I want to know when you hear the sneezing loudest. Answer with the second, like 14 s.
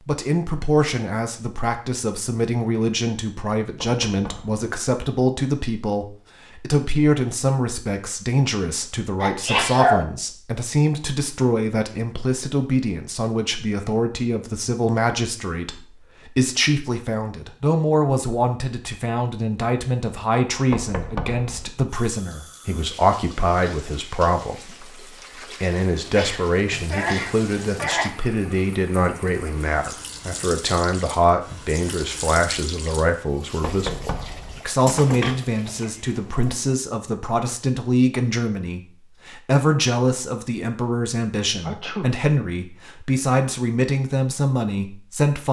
10 s.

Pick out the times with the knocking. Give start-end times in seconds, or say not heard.
3.8-4.7, 20.7-21.7, 33.6-34.6.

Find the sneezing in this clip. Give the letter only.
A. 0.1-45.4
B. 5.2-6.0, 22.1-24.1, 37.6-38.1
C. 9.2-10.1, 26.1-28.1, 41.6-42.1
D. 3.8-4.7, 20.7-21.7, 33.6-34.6
C.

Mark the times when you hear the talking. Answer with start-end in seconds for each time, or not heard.
0.1-45.4.